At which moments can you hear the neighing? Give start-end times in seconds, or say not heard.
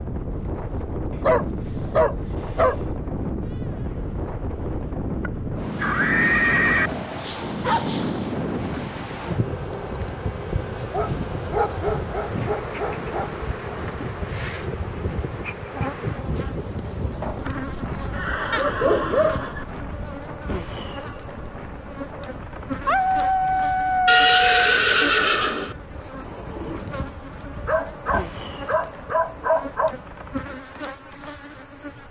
5.8-6.9, 18.0-19.6, 24.1-25.8.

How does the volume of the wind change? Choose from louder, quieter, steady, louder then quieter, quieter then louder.
quieter.